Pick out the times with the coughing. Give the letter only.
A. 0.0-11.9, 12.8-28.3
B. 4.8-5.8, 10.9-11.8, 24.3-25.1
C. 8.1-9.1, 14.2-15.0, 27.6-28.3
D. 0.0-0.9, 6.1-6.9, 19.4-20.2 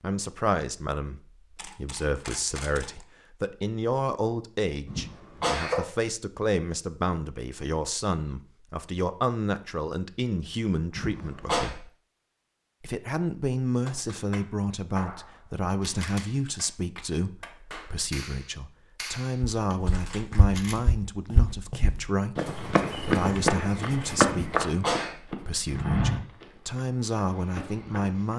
B.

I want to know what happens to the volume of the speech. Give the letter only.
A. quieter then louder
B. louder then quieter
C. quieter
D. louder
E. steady
E.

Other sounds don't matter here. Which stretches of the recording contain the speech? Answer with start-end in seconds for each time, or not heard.
0.0-11.9, 12.8-28.3.